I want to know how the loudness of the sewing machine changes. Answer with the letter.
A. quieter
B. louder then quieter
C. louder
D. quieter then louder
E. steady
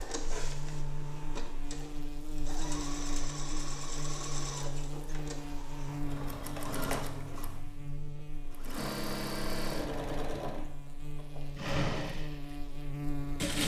C.